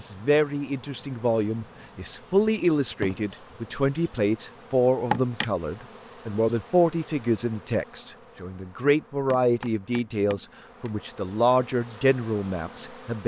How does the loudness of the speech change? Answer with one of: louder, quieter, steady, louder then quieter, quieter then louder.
steady.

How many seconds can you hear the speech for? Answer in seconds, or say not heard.
13 s.